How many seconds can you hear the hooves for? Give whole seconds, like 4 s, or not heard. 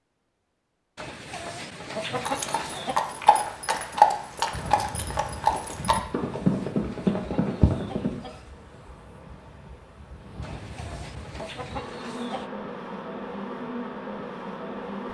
6 s.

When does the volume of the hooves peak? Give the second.
4 s.